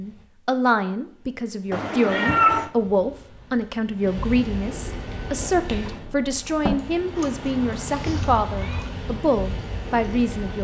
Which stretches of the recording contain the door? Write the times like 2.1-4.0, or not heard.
5.3-6.8.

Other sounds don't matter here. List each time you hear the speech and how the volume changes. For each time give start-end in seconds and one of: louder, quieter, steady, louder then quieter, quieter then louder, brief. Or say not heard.
0.0-10.5 steady.